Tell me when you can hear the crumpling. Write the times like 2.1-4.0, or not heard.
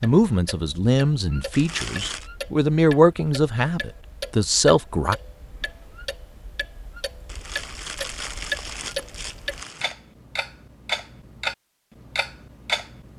1.5-2.3, 7.2-9.9.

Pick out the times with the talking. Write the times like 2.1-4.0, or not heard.
0.0-5.2.